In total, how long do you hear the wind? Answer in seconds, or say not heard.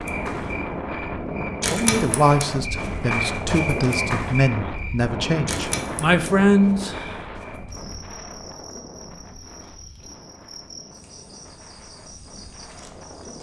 13 s.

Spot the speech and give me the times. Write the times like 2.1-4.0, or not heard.
1.7-7.1.